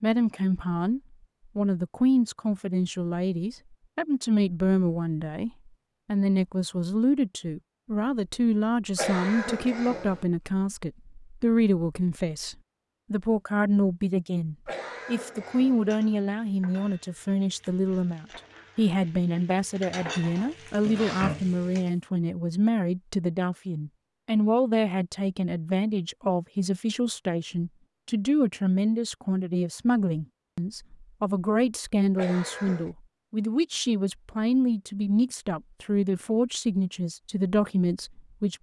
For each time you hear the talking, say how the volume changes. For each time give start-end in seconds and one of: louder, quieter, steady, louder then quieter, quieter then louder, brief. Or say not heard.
0.0-38.5 steady.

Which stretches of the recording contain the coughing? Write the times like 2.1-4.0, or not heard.
8.9-10.2, 14.7-15.9, 32.1-32.9.